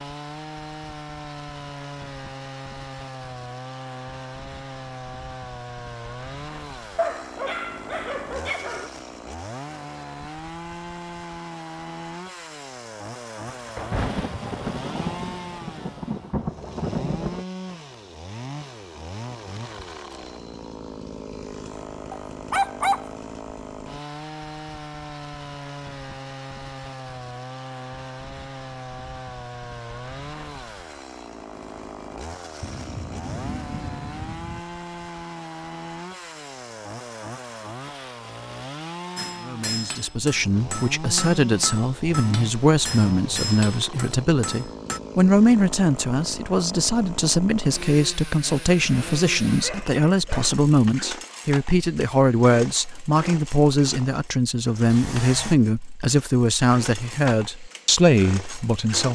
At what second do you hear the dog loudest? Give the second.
23 s.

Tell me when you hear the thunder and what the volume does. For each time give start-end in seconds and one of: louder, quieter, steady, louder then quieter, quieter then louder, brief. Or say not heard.
13.4-17.4 quieter then louder
32.6-34.6 brief.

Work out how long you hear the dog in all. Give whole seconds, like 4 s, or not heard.
4 s.